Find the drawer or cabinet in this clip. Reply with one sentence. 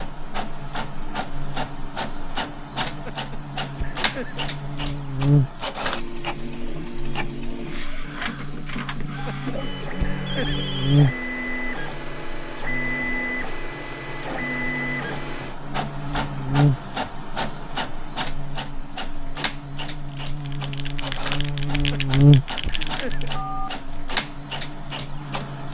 The drawer or cabinet can't be heard in this clip.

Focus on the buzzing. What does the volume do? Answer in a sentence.
The volume of the buzzing goes up.